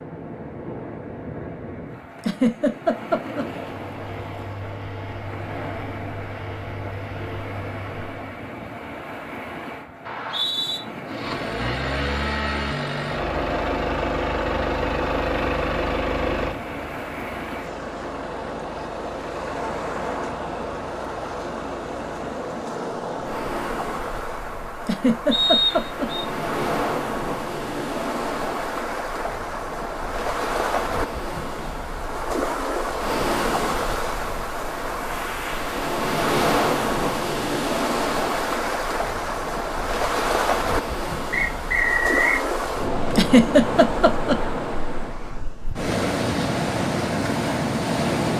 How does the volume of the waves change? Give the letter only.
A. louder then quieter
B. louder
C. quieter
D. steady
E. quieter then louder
B.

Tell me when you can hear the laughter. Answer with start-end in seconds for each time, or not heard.
2.1-3.5, 24.8-26.1, 43.1-44.4.